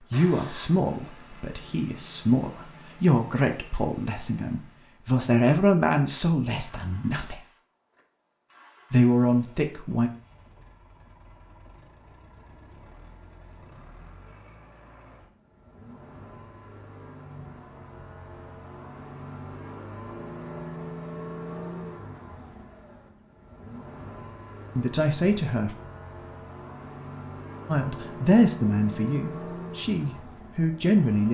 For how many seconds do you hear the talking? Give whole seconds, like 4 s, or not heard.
13 s.